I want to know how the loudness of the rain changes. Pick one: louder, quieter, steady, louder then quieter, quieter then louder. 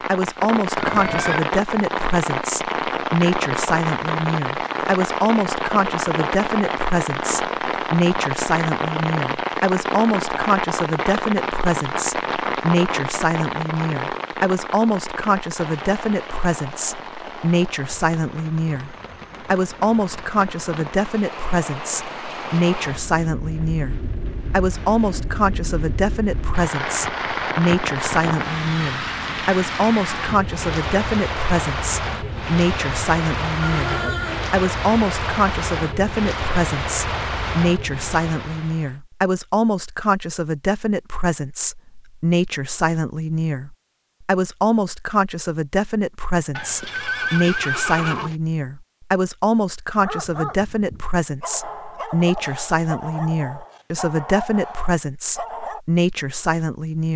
quieter then louder.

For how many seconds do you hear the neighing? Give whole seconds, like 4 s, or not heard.
3 s.